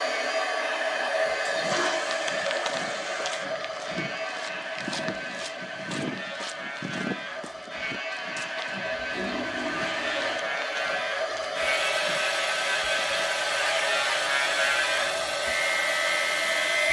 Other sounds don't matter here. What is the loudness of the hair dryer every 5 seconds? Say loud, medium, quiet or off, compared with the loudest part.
loud, medium, loud, loud.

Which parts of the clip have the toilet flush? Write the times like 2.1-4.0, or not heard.
1.4-3.5, 8.8-10.4.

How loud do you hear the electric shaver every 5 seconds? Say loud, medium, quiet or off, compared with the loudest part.
medium, medium, loud, loud.